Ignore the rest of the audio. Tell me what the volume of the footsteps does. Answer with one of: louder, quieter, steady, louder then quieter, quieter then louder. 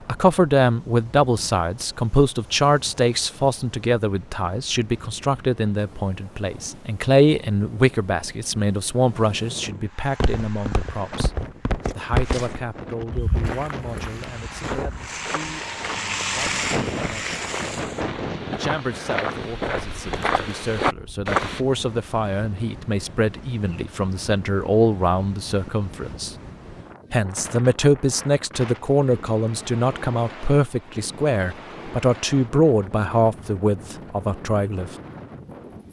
quieter then louder.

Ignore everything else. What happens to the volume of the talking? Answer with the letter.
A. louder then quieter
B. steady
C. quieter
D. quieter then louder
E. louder
D.